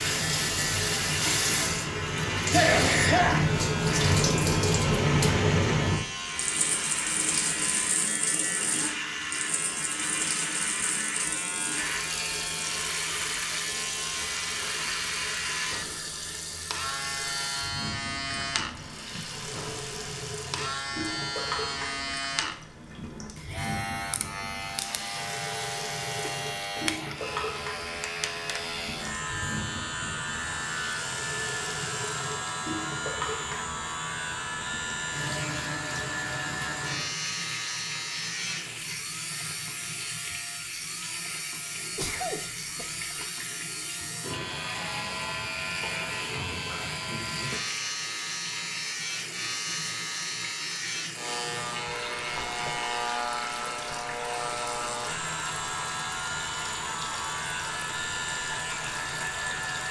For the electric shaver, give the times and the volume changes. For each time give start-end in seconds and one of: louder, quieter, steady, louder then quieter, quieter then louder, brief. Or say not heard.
0.0-59.8 steady.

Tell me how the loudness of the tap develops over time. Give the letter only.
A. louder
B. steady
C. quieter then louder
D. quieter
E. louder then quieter
D.